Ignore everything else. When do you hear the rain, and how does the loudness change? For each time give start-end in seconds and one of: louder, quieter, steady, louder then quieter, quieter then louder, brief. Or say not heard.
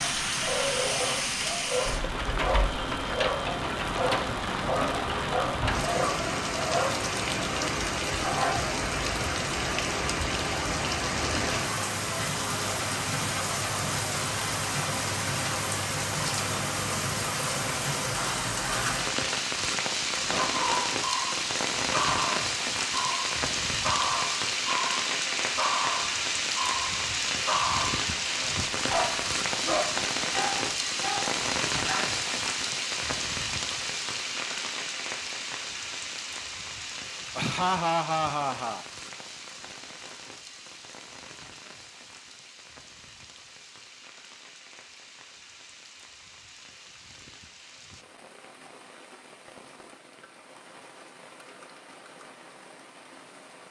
0.0-53.6 quieter.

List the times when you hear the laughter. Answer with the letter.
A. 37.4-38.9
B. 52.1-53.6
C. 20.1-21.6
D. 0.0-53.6
A.